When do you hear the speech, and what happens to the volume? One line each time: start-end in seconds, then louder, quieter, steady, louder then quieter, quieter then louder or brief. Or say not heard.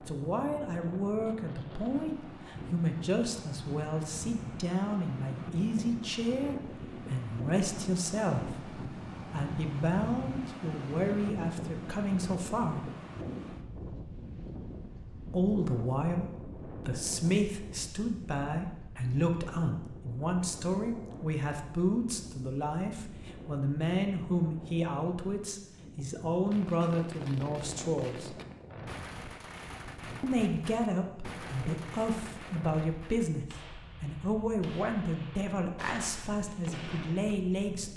0.1-12.9 steady
15.3-28.4 steady
30.2-37.9 steady.